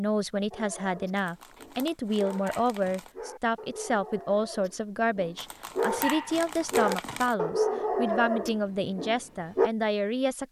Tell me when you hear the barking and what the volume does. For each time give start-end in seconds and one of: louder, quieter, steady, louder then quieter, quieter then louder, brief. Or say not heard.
0.5-9.7 louder.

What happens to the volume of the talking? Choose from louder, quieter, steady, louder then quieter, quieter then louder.
steady.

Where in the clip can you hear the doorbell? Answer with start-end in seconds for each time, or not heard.
not heard.